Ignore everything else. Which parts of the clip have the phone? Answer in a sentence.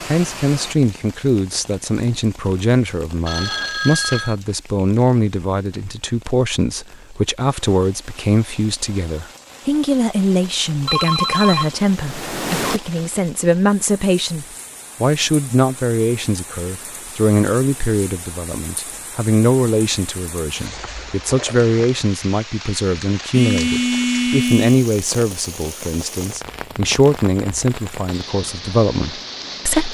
You can hear the phone from 3.2 to 4.3 s, from 10.8 to 12.8 s and from 23.3 to 24.9 s.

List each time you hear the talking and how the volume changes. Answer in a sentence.
You can hear the talking from 0.1 to 29.8 s, at a steady volume.